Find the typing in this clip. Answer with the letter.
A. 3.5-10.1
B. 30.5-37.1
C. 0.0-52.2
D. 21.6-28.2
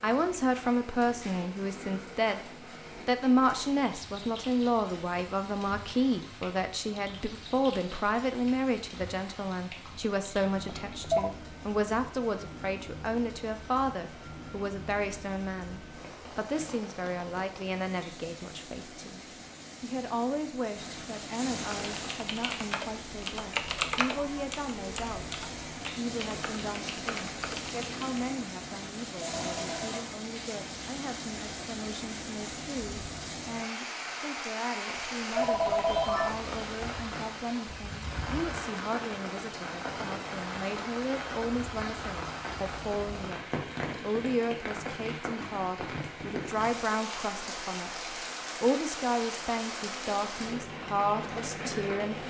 D.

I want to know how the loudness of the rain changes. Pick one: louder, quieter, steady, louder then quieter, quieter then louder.
louder.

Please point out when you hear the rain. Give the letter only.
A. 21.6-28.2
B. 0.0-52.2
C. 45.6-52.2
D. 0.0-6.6
B.